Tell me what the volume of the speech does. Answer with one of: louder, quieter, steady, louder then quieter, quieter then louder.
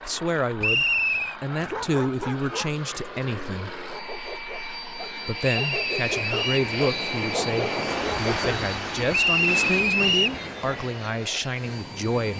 steady.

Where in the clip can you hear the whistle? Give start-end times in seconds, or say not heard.
0.6-1.4, 5.4-6.7, 9.1-10.4.